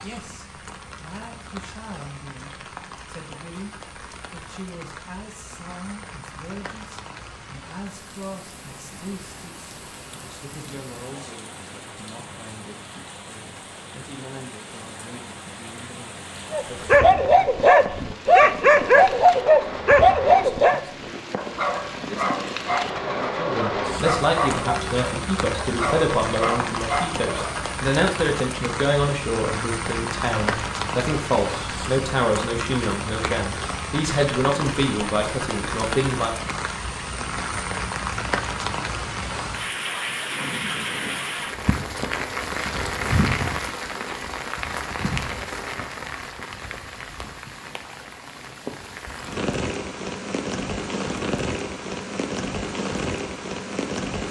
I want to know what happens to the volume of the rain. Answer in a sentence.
The loudness of the rain goes up.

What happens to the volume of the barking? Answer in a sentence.
The loudness of the barking goes down.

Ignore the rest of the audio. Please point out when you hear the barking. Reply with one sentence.
The barking can be heard from 16.5 to 27.7 s.